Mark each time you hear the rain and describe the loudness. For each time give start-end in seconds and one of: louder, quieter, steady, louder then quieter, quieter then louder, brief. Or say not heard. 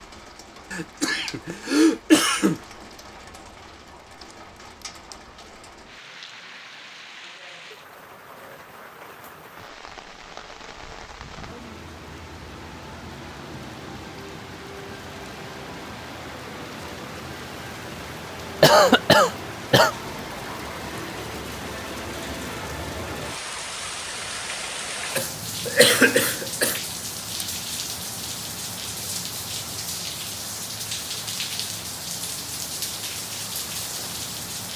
0.0-34.7 louder.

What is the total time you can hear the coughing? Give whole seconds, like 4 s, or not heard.
5 s.